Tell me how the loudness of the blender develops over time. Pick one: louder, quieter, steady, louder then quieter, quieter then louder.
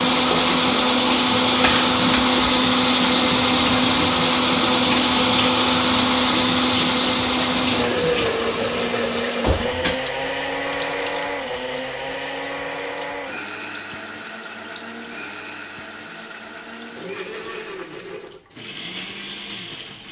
quieter.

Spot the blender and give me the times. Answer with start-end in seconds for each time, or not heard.
0.0-20.0.